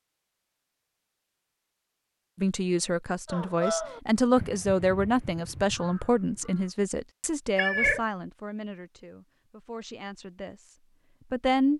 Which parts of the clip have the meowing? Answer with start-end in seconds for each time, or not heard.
7.5-8.1.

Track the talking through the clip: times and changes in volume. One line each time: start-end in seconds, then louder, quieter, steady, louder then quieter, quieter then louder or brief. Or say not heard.
2.4-11.7 quieter.